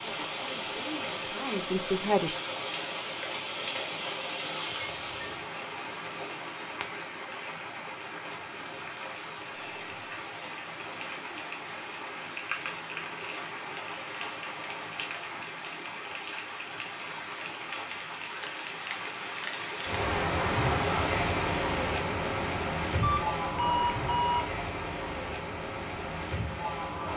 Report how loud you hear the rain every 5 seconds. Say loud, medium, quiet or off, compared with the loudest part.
medium, medium, medium, medium, loud, medium.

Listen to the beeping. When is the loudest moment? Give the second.
24 s.